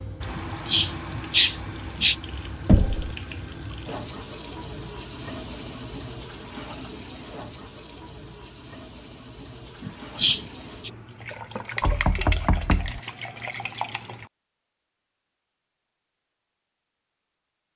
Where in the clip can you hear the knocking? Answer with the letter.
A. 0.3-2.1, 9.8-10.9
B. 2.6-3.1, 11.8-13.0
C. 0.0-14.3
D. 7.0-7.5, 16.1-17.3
B.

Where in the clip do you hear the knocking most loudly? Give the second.
3 s.